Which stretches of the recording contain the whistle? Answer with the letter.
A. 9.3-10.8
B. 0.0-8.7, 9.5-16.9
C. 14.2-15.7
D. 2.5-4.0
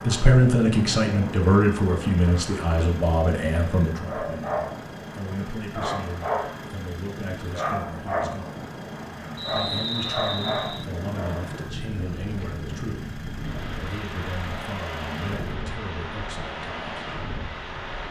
A.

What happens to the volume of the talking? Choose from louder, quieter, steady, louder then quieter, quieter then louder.
quieter.